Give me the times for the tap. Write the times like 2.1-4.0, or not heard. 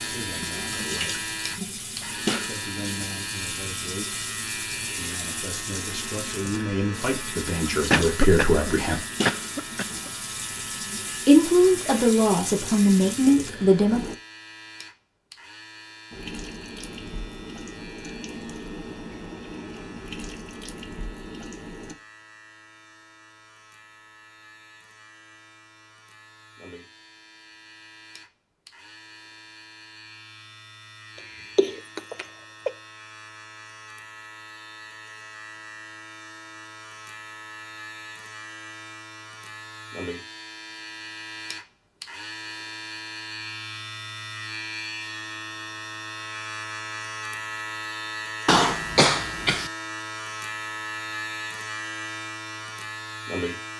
0.0-14.2, 16.1-21.9.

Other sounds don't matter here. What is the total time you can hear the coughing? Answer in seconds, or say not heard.
5 s.